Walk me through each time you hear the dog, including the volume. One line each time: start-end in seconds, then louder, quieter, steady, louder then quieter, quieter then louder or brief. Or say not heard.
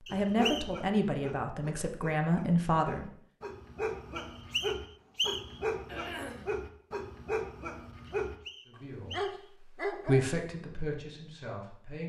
0.1-8.3 louder
9.1-10.3 brief.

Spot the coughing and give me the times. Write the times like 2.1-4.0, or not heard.
5.8-6.5.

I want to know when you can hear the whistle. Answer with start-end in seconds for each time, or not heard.
0.1-0.8, 4.2-5.6, 8.1-9.5.